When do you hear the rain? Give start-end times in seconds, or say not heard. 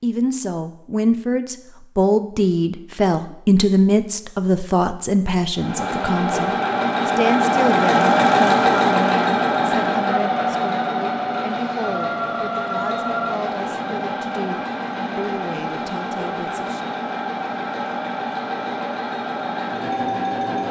not heard.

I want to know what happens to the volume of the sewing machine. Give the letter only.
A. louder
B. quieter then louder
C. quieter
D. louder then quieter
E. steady
C.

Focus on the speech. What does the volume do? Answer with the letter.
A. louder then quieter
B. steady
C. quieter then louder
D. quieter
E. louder
D.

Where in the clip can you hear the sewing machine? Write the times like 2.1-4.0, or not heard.
5.5-20.6.